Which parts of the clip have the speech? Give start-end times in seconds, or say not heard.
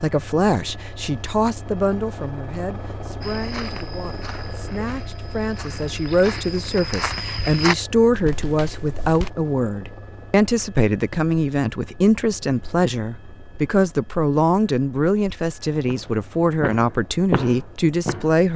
0.0-18.5.